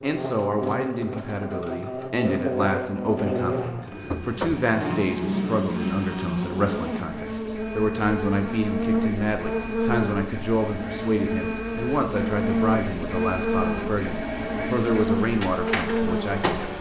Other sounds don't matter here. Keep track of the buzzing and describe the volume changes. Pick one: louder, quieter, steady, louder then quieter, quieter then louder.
steady.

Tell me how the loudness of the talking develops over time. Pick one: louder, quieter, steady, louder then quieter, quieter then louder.
steady.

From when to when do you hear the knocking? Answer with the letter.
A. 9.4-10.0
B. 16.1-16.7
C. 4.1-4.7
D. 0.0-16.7
C.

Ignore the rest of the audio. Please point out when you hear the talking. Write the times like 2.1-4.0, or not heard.
0.0-16.7.